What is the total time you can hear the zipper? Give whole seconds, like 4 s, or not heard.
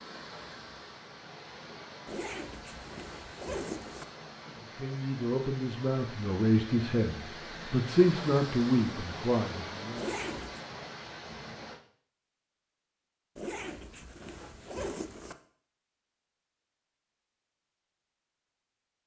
5 s.